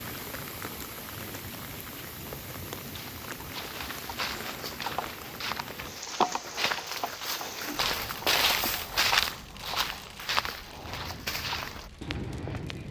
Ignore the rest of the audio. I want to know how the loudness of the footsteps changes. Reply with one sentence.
The volume of the footsteps goes up, then down.